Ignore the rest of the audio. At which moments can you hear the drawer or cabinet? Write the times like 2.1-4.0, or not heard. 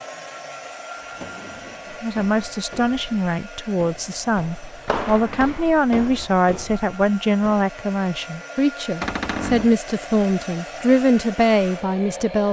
0.9-2.0, 4.8-5.6, 9.0-9.8.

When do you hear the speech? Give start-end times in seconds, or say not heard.
2.0-12.4.